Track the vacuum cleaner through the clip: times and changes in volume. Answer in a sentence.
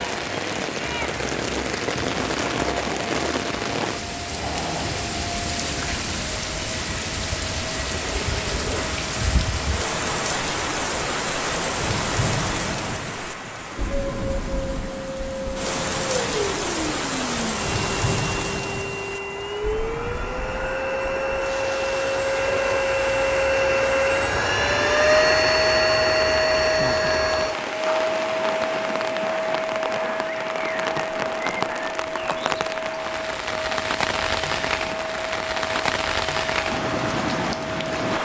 The vacuum cleaner can be heard from 0.0 to 38.1 s, getting louder then quieter.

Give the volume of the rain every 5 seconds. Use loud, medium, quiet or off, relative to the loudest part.
loud, loud, loud, loud, medium, medium, loud, loud.